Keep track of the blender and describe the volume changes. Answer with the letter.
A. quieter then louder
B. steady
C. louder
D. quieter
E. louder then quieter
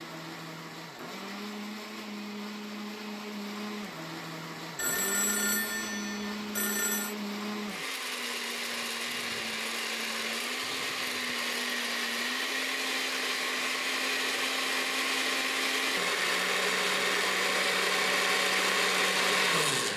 C.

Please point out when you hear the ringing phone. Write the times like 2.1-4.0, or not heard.
4.8-7.2.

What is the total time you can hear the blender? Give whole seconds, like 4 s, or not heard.
20 s.